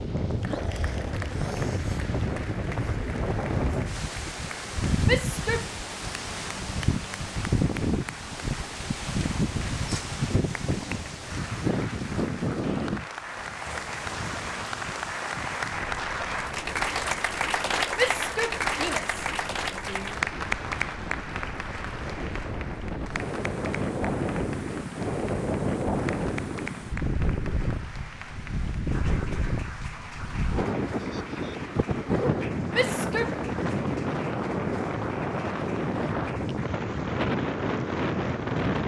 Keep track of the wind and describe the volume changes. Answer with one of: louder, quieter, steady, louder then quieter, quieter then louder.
quieter then louder.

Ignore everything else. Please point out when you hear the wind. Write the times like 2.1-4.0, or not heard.
0.0-38.8.